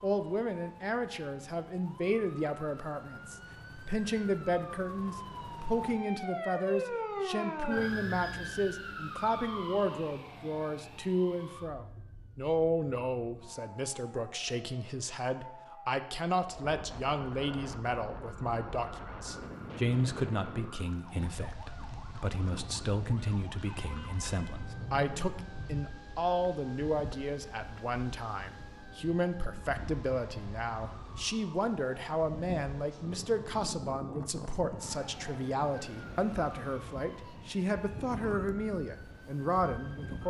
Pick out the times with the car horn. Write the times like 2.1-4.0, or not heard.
23.6-25.4.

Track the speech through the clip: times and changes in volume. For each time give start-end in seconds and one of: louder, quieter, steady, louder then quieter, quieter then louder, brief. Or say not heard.
0.0-40.2 steady.